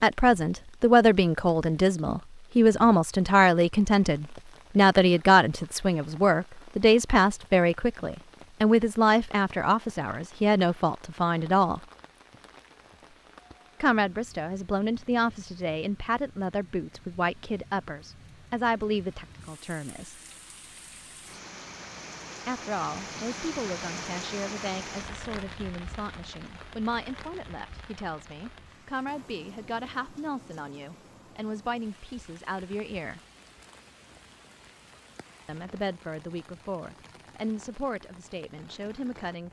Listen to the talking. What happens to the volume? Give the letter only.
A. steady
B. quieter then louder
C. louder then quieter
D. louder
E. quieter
E.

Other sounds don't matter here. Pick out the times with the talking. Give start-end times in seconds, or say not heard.
0.0-11.8, 13.8-20.1, 22.4-33.2, 35.5-39.4.